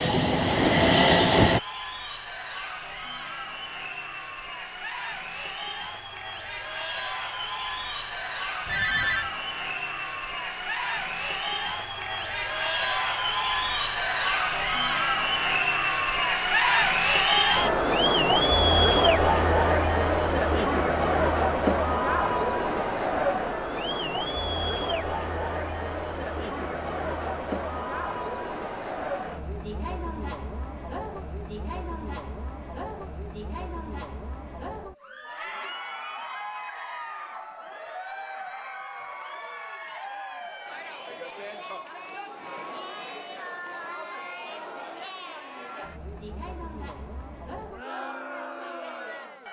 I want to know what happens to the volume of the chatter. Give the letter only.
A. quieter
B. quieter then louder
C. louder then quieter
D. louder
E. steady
C.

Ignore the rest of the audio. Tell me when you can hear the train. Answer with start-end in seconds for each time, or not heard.
0.0-1.6.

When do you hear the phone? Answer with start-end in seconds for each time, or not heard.
8.7-9.3.